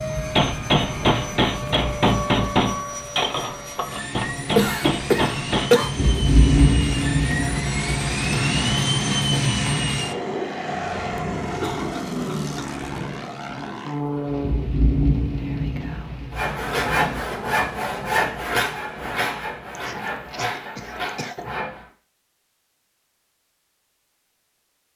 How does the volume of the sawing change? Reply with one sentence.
The loudness of the sawing goes down.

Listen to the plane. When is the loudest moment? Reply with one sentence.
The loudest moment of the plane is at 9 seconds.